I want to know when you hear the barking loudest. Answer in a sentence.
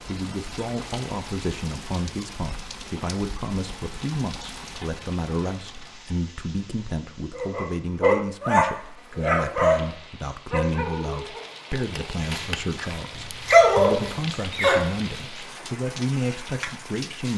The volume of the barking peaks at 14 seconds.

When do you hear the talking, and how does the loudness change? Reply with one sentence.
The talking can be heard from 0.0 to 17.3 s, at a steady volume.